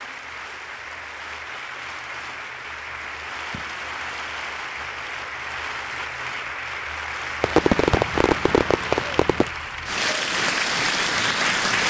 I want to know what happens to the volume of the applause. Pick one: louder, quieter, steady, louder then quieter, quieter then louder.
louder.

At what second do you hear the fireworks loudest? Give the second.
8 s.